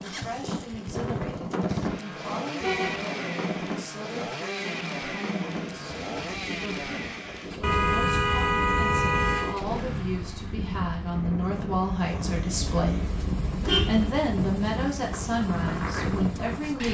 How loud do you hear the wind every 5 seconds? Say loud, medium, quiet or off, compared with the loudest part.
loud, medium, loud, loud.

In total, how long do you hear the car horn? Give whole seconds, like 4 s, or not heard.
4 s.